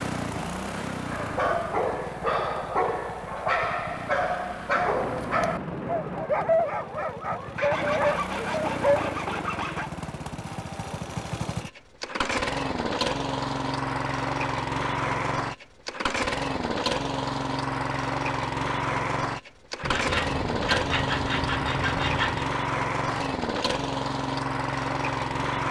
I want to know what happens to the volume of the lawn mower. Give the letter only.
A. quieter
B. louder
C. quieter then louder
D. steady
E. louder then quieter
B.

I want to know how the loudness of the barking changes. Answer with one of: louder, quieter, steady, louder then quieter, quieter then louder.
steady.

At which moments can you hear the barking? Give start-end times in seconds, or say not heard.
1.1-9.2.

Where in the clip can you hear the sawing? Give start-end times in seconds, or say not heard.
7.5-9.9, 19.8-22.5.